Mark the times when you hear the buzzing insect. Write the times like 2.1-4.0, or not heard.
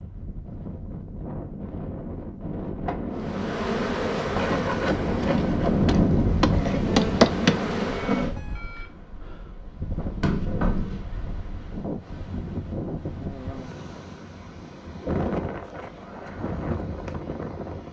3.3-8.3.